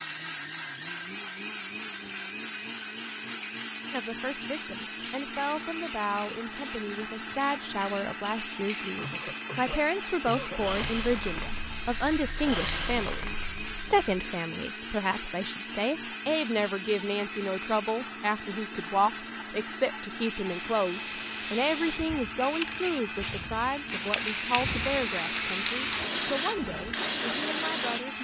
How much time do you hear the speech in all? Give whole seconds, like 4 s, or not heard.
24 s.